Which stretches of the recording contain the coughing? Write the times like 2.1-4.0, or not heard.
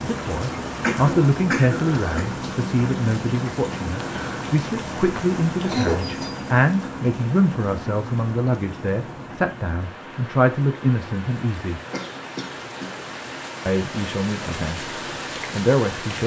0.8-2.3, 5.7-6.3, 11.9-13.0.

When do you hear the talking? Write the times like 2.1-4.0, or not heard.
0.0-11.8, 13.7-16.2.